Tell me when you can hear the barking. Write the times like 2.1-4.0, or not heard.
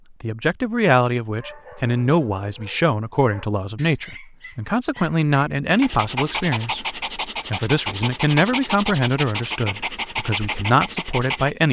1.3-11.5.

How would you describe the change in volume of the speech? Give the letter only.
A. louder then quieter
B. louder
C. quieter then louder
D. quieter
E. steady
E.